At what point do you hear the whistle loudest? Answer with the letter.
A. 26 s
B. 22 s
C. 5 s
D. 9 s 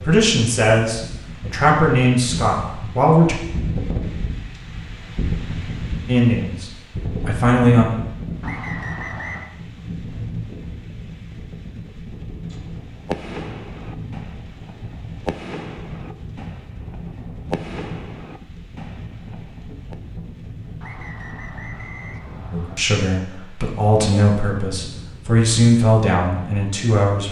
D.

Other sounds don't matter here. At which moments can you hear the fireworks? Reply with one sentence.
You can hear the fireworks from 12.7 to 19.9 s.